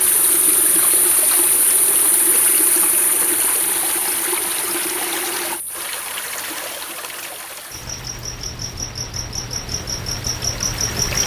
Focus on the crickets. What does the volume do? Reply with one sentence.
The volume of the crickets goes down, then up.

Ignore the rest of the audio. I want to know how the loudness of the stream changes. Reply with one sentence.
The volume of the stream goes down.